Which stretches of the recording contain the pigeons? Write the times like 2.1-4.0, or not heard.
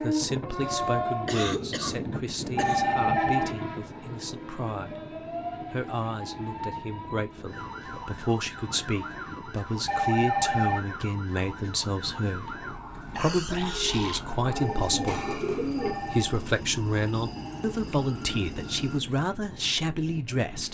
13.7-15.9.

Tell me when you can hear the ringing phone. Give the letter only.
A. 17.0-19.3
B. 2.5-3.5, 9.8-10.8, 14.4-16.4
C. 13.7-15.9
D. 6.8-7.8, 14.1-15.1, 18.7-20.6
B.